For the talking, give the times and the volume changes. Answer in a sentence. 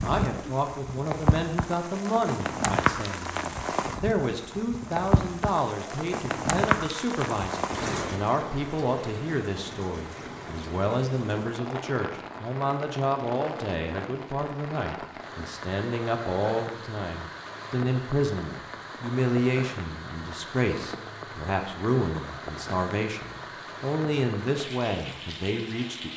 You can hear the talking from 0.0 to 26.1 s, at a steady volume.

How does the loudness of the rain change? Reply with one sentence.
The volume of the rain goes down.